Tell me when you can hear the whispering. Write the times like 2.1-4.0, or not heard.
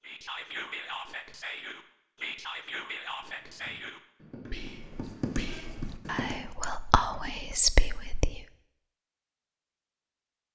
0.0-8.4.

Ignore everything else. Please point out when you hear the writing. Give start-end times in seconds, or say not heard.
3.2-6.4.